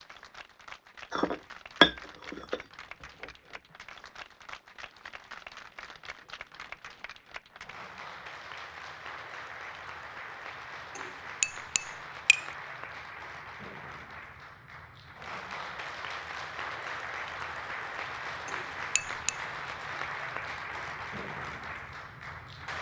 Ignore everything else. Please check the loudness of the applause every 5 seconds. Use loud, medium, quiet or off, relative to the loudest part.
medium, medium, medium, loud, loud.